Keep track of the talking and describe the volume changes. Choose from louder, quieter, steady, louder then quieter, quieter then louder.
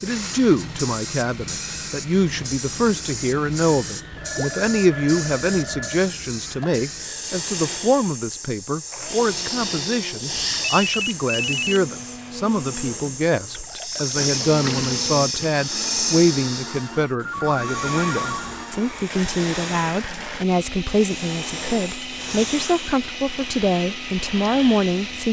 steady.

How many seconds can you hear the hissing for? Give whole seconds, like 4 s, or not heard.
25 s.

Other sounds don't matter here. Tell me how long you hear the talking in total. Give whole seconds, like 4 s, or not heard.
25 s.